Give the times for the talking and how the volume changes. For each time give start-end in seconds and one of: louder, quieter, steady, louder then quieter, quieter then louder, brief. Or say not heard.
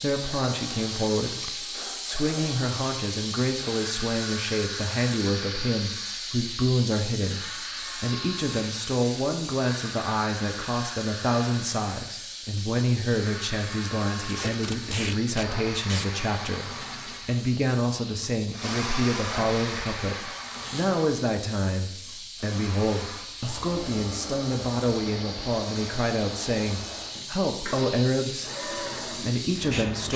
0.0-30.1 steady.